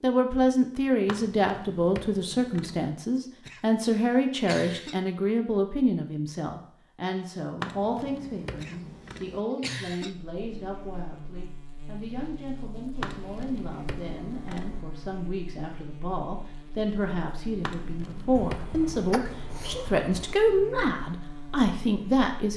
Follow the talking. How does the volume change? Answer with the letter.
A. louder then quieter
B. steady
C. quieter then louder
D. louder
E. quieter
C.